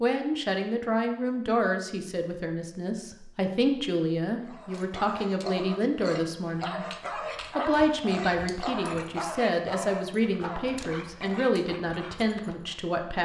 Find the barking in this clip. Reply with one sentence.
The barking can be heard from 4.4 to 12.8 s.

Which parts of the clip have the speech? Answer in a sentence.
You can hear the speech from 0.0 to 6.8 s and from 7.5 to 13.2 s.